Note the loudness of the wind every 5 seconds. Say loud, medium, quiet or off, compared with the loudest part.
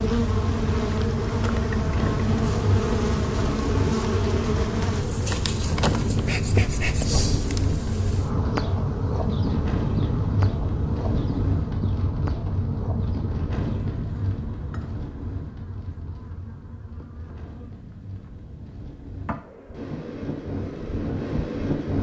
loud, loud, loud, quiet, loud.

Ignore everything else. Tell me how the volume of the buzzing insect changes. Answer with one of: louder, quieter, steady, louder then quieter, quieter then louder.
quieter.